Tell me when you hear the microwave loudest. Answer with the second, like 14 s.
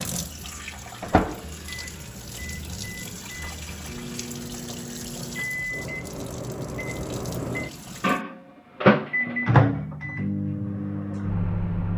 9 s.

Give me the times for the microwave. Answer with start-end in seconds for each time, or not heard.
0.0-11.9.